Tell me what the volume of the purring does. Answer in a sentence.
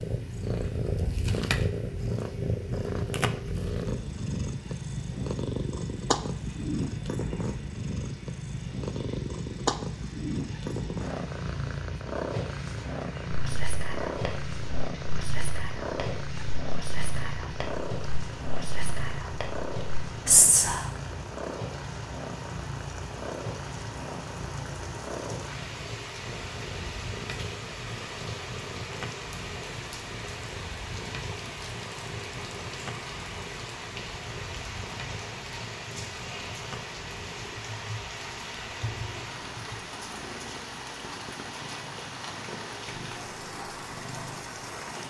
The loudness of the purring goes down.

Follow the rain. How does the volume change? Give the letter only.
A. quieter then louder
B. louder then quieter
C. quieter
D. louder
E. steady
D.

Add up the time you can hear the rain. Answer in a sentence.
You can hear the rain for 45 seconds altogether.